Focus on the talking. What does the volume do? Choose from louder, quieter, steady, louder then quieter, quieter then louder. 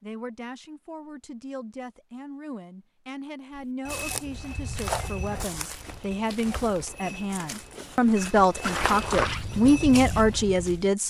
louder.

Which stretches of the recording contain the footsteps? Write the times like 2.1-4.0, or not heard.
3.5-10.9.